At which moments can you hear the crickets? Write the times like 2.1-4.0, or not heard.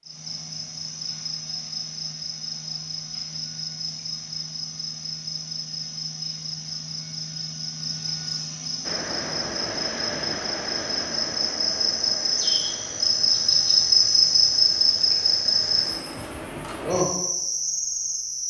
0.0-18.4.